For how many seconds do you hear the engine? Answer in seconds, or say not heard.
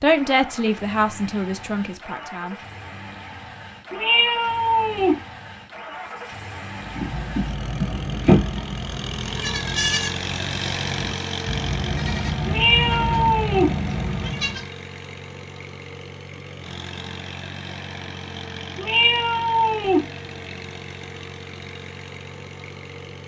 23 s.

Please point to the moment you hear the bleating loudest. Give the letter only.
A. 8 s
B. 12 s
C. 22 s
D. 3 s
A.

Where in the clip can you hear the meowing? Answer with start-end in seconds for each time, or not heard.
3.9-5.2, 12.4-13.8, 18.8-20.1.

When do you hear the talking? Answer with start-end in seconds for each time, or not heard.
0.0-2.5.